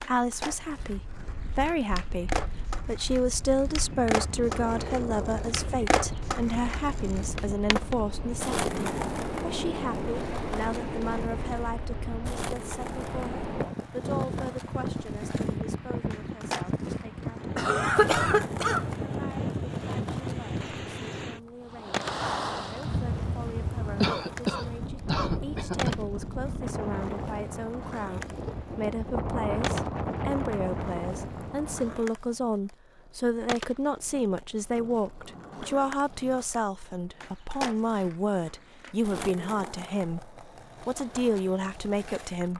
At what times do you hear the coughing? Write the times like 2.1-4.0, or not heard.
17.6-18.9, 24.0-25.9.